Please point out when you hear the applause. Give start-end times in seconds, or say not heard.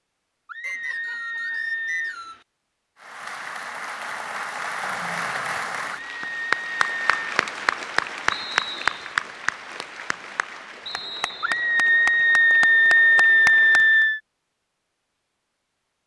3.0-14.1.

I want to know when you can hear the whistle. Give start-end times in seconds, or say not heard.
0.6-2.5, 8.3-9.2, 10.8-11.7.